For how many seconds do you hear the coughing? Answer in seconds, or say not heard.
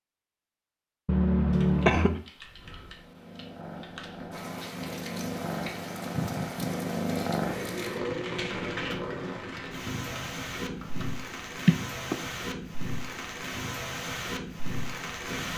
2 s.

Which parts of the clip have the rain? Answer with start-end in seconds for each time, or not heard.
4.3-15.5.